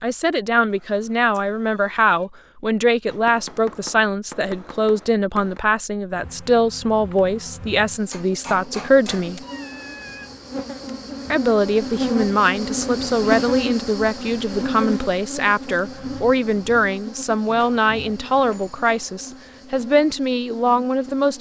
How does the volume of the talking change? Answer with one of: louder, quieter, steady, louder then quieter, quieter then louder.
steady.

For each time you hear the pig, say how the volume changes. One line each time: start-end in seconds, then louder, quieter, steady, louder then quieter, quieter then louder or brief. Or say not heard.
not heard.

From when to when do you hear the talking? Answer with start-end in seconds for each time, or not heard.
0.0-9.4, 11.3-21.3.